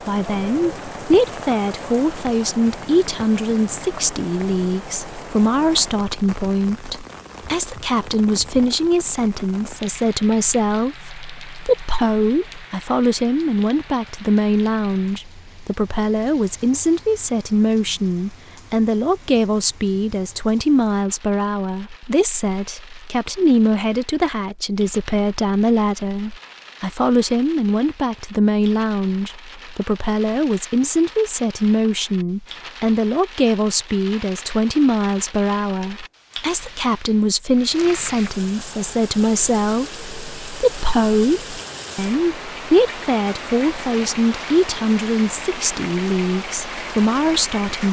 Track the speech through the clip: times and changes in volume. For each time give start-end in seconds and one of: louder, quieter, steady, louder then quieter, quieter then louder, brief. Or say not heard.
0.1-47.8 steady.